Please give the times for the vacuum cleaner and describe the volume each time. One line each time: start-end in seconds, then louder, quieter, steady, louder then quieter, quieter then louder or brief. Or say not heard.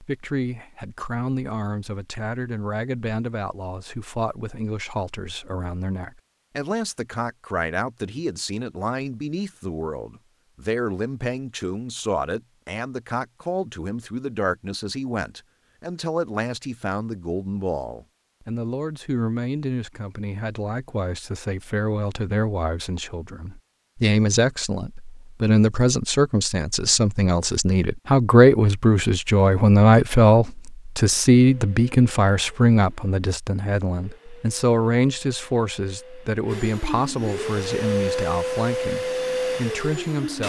31.4-40.4 louder.